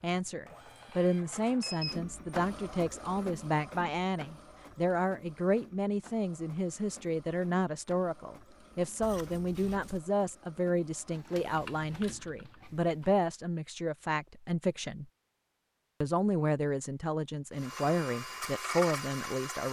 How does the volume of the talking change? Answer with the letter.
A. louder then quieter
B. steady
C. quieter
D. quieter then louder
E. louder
B.